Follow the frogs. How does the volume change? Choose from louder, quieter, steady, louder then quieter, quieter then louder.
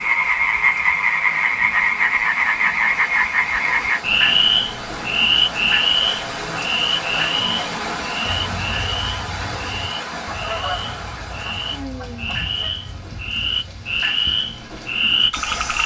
quieter then louder.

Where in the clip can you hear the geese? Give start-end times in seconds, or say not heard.
8.2-14.0.